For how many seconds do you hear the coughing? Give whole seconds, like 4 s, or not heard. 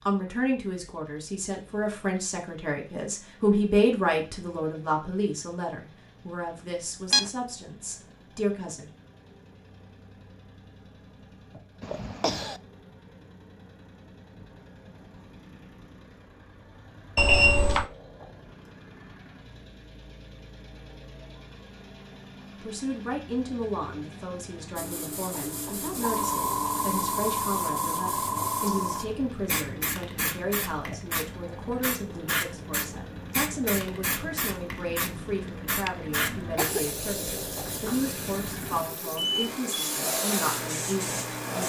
2 s.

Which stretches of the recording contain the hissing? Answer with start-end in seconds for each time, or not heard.
24.8-41.6.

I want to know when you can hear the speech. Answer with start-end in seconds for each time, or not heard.
0.1-8.9, 22.6-41.6.